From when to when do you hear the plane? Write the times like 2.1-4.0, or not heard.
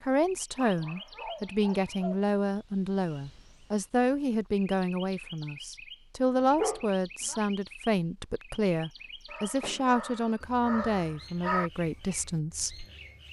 not heard.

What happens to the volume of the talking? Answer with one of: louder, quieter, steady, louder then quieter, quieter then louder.
steady.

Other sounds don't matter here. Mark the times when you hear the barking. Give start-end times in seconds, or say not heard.
0.7-2.2, 6.5-7.4, 9.3-11.7.